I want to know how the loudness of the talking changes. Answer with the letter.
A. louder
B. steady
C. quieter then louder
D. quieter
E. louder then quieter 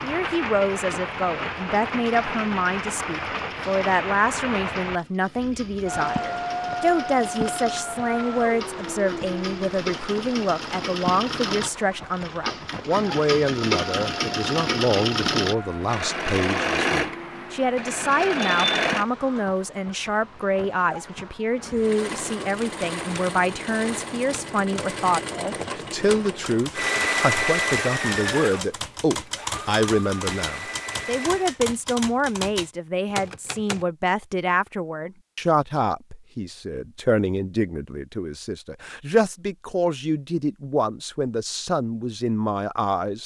B.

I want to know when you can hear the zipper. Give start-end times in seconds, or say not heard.
not heard.